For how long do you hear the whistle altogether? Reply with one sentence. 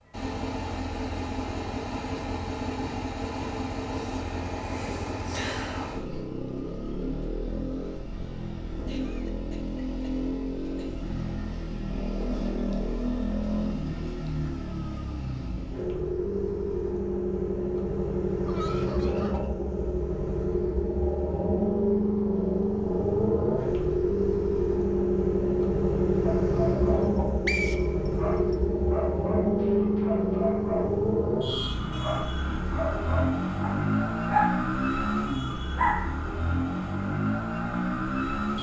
The whistle can be heard for 2 seconds in total.